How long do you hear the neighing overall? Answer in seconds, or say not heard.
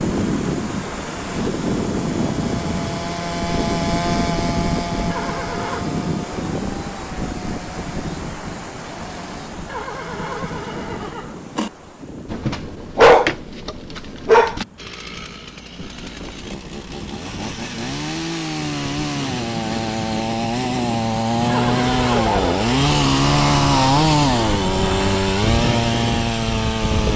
4 s.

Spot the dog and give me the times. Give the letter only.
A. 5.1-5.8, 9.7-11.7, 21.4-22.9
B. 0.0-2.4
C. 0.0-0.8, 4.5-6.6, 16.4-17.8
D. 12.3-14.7
D.